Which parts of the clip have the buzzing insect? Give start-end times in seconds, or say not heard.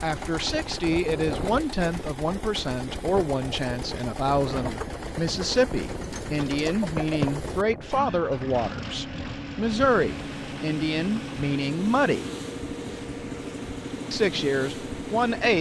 not heard.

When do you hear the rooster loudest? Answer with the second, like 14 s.
7 s.